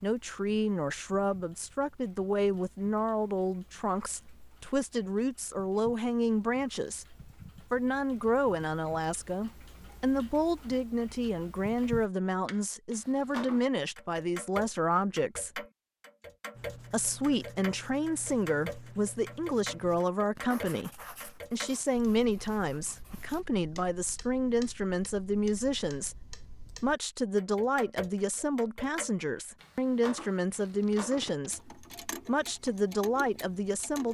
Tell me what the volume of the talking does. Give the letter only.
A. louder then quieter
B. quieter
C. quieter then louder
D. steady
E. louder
D.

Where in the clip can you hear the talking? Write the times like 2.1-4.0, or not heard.
0.0-15.6, 16.9-34.0.